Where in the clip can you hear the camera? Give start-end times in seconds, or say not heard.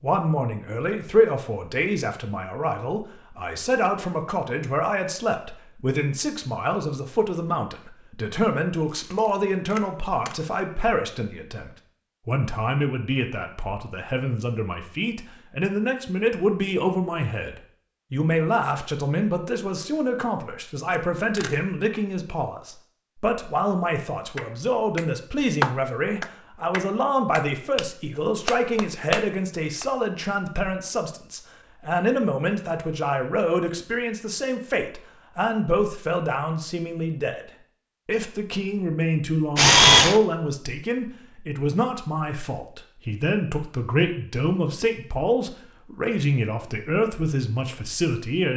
8.9-10.3, 20.9-21.6, 39.5-40.2.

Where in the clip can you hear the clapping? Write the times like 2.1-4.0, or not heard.
24.4-29.9.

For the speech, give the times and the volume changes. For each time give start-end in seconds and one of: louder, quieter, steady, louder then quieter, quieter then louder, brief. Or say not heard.
0.0-48.5 steady.